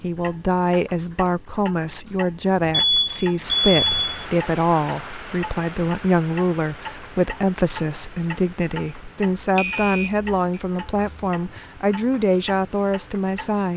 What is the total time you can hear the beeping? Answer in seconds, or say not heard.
2 s.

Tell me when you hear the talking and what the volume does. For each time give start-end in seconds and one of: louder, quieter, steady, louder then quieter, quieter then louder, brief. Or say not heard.
0.0-13.7 steady.